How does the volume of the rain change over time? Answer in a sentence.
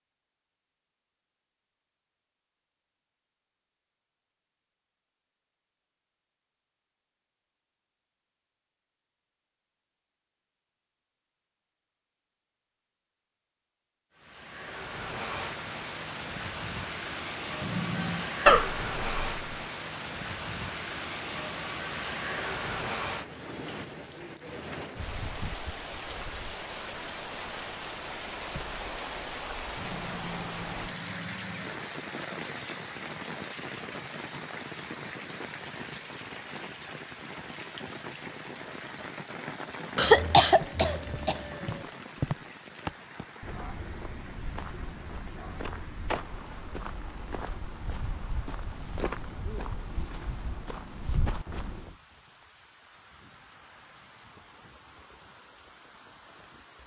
The volume of the rain goes down.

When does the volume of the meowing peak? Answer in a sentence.
The loudest moment of the meowing is at 18 seconds.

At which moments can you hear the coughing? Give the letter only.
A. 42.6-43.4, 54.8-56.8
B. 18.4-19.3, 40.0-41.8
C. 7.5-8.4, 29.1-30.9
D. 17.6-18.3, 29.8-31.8
B.